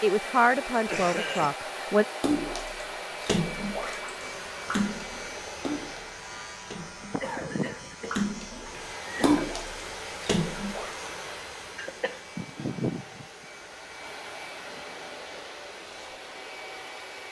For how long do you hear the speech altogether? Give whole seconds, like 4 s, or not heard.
2 s.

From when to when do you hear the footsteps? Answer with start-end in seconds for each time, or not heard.
not heard.